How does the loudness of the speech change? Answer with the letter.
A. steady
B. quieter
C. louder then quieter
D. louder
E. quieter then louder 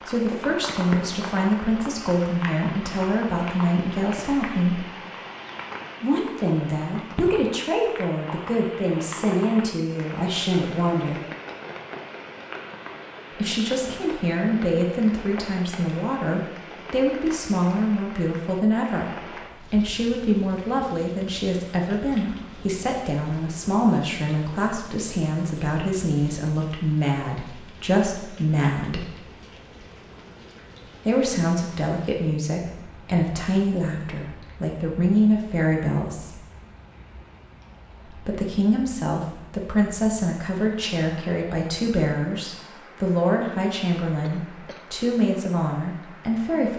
A.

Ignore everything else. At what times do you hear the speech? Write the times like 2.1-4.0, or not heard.
0.1-4.9, 6.0-11.2, 13.3-29.1, 31.1-36.4, 38.0-46.7.